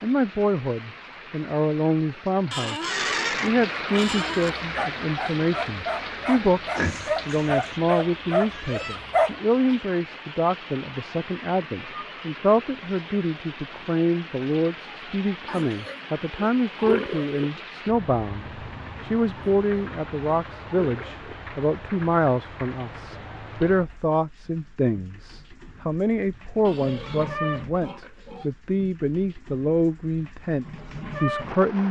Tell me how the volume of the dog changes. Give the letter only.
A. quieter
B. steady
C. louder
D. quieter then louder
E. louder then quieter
C.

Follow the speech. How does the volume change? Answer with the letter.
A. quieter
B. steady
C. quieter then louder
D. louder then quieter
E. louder
B.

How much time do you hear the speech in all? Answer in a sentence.
The speech can be heard for 32 seconds in total.